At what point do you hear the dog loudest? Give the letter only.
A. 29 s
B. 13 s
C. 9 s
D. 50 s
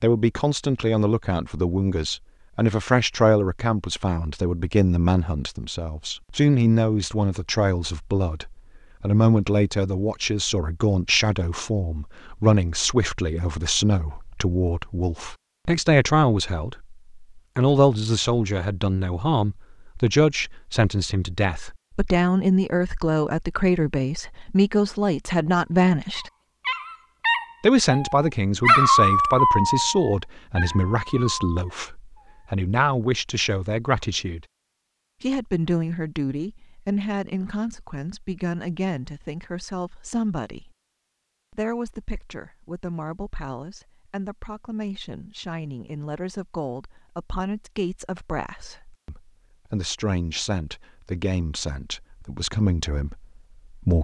A.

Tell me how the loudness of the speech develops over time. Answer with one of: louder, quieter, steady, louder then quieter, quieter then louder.
quieter.